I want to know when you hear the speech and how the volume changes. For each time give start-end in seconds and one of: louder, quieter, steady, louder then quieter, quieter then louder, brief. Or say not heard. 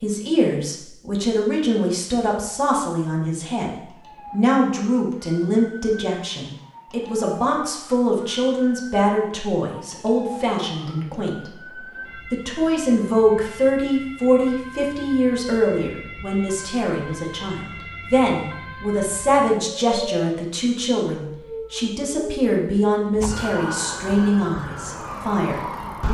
0.0-26.0 steady.